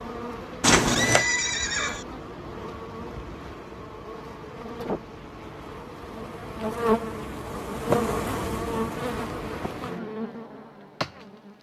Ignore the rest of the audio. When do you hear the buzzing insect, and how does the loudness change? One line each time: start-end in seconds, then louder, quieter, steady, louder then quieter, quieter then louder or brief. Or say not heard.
0.0-11.5 louder then quieter.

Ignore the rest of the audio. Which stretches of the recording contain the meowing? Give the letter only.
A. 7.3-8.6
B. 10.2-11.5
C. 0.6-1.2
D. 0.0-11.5
C.